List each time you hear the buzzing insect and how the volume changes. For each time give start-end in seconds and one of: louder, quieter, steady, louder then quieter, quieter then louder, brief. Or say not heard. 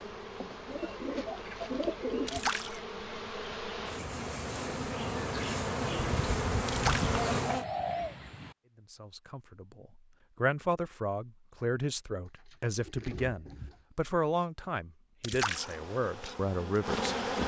0.0-7.7 louder
15.4-17.4 brief.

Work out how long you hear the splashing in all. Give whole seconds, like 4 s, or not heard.
2 s.